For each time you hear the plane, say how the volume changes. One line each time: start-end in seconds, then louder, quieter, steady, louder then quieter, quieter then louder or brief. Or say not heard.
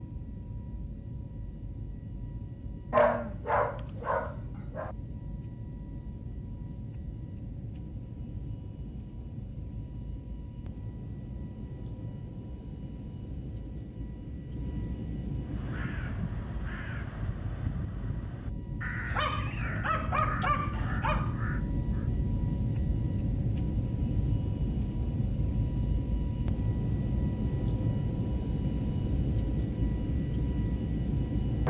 0.0-31.6 louder.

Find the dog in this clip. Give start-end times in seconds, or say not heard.
2.9-5.0, 19.1-21.4.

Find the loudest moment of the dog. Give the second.
3 s.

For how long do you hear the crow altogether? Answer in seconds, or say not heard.
7 s.